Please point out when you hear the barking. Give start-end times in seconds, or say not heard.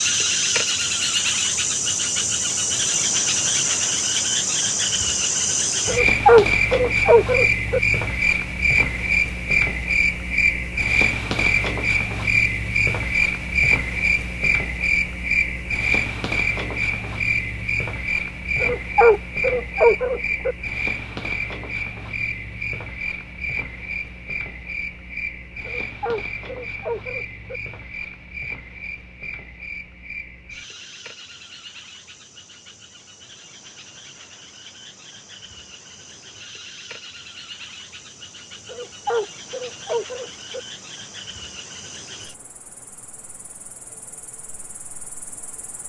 5.8-7.8, 18.6-20.6, 25.6-27.6, 38.6-40.6.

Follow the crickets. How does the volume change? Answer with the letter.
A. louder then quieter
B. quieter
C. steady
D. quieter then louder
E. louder
B.